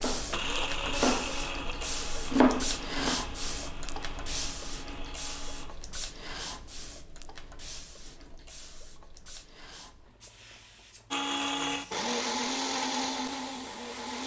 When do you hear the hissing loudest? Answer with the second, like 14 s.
3 s.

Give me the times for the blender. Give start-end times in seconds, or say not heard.
0.0-5.7, 11.1-14.2.